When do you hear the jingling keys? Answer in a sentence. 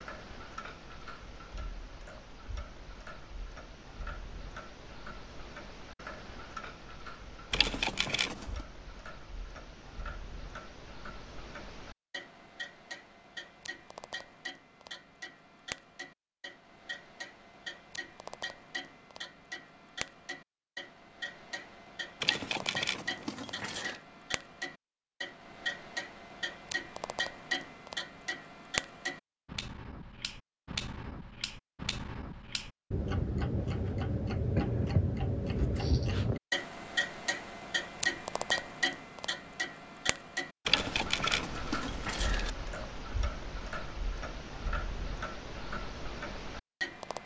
The jingling keys can be heard from 7.5 to 8.4 s, from 22.2 to 24.0 s and from 40.6 to 42.5 s.